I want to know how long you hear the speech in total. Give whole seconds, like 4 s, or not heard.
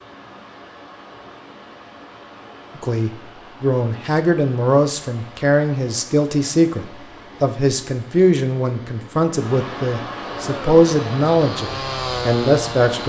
10 s.